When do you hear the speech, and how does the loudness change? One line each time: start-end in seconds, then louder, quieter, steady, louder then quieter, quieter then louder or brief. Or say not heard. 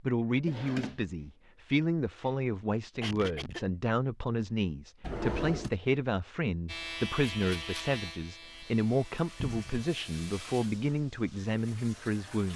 0.0-12.5 steady.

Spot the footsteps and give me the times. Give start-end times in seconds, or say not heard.
not heard.